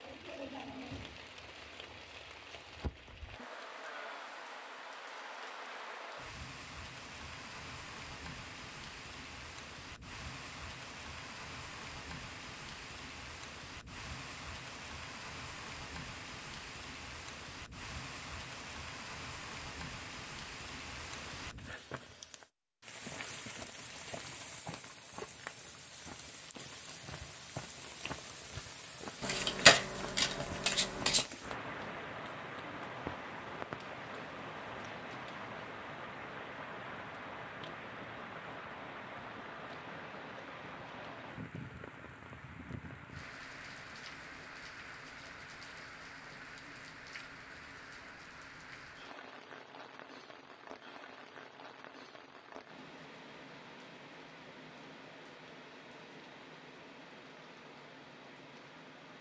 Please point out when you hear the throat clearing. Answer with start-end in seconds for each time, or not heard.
not heard.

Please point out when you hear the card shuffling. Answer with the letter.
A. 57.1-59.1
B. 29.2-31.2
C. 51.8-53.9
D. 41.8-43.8
B.